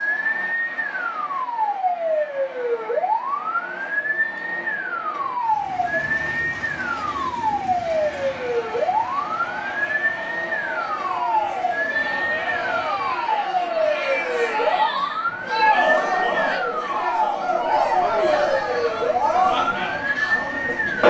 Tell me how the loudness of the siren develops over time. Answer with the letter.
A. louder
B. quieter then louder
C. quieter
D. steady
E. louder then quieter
D.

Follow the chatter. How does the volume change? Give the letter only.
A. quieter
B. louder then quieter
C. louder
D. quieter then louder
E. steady
C.